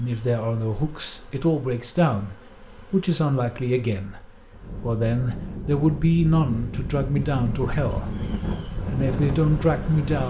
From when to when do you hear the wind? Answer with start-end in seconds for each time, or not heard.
4.5-10.2.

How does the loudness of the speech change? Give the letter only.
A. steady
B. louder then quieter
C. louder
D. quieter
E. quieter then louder
A.